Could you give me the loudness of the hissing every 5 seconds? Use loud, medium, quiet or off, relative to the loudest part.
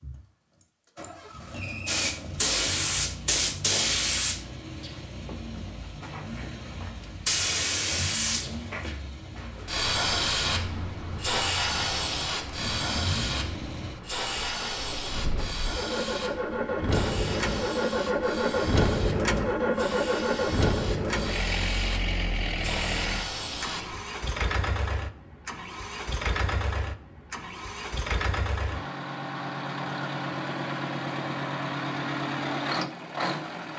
loud, loud, loud, medium, medium, off, off.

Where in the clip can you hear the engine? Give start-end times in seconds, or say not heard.
0.0-33.7.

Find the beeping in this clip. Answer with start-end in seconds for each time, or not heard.
not heard.